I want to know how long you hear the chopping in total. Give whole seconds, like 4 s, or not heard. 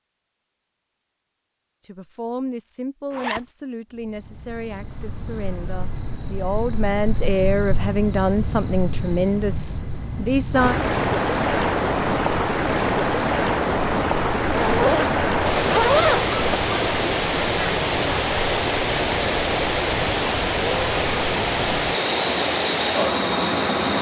not heard.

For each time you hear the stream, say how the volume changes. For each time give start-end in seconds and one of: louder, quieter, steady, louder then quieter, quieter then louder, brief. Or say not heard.
10.5-23.9 steady.